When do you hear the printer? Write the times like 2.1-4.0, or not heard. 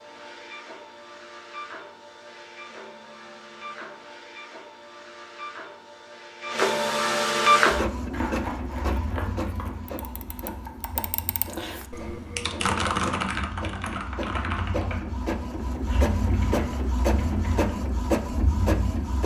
0.0-19.2.